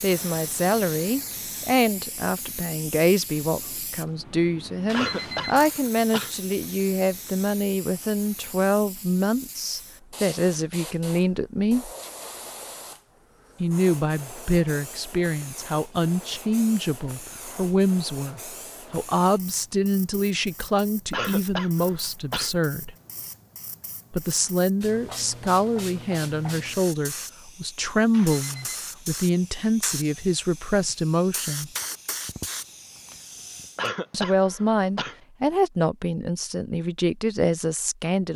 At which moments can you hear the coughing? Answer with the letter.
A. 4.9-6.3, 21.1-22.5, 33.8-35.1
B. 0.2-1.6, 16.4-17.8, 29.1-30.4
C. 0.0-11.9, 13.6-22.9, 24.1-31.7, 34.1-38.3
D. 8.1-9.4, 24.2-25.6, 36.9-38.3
A.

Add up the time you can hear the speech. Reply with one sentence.
The speech can be heard for 33 seconds in total.